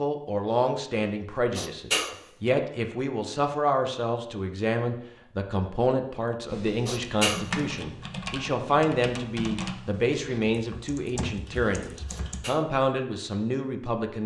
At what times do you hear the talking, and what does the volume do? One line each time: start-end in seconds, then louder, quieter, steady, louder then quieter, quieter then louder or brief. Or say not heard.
0.0-14.2 steady.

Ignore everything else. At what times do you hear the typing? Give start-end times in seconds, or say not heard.
6.5-12.4.